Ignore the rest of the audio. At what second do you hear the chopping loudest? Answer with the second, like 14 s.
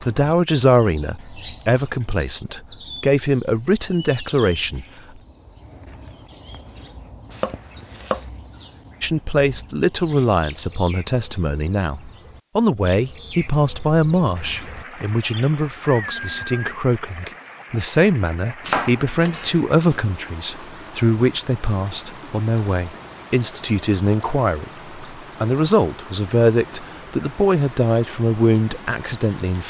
19 s.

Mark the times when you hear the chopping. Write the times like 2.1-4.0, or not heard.
7.3-8.2, 18.6-20.0.